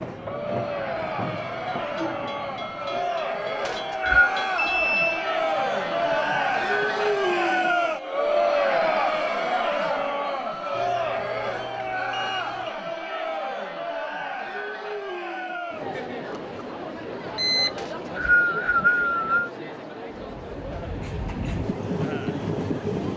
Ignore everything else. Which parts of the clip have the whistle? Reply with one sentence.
The whistle can be heard from 3.6 to 4.3 s and from 17.8 to 19.5 s.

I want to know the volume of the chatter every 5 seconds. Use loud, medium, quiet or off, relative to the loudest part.
medium, loud, medium, medium, quiet.